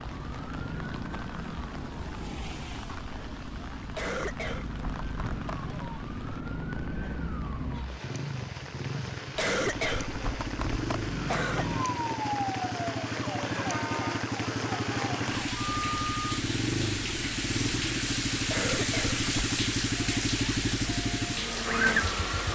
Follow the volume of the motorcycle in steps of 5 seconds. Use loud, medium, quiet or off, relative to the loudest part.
quiet, medium, medium, loud, loud.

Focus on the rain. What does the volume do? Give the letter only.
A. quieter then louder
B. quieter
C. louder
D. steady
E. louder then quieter
C.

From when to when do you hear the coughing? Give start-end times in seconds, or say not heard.
3.9-5.8, 9.3-11.8, 18.4-19.6.